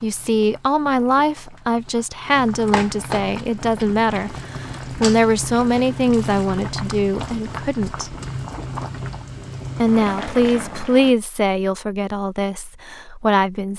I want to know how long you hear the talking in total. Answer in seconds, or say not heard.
12 s.